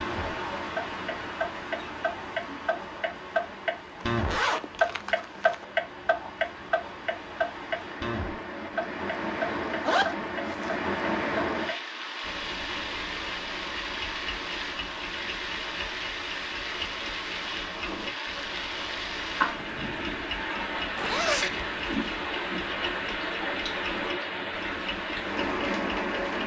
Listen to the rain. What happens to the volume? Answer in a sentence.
The loudness of the rain goes up.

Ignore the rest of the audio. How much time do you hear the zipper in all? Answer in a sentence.
The zipper can be heard for 4 seconds in total.